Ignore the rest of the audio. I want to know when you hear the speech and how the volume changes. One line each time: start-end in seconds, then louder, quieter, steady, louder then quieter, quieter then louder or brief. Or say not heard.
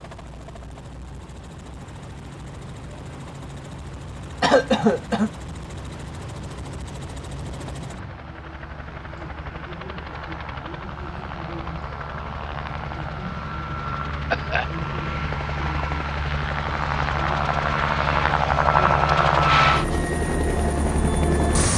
not heard.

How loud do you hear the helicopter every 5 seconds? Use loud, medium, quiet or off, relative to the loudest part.
quiet, quiet, medium, loud, loud.